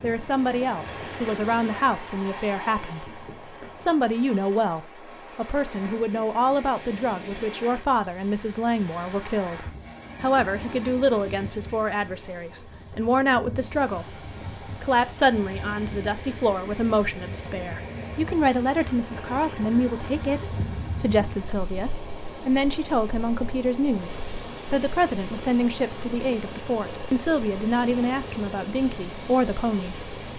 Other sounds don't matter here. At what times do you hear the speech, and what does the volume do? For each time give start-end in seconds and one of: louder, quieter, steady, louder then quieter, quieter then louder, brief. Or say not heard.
0.0-30.1 steady.